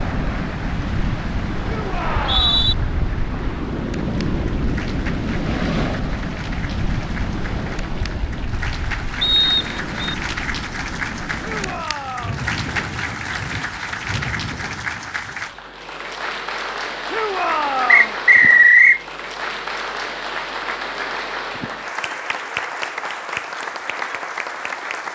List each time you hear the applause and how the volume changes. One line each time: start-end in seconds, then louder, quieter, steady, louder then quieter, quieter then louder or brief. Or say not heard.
0.0-25.1 louder.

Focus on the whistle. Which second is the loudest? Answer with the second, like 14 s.
19 s.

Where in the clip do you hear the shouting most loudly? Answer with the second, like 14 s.
18 s.